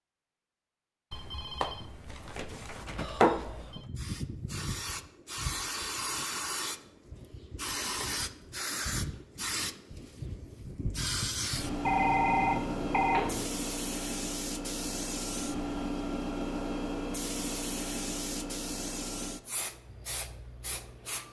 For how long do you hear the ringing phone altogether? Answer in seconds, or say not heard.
4 s.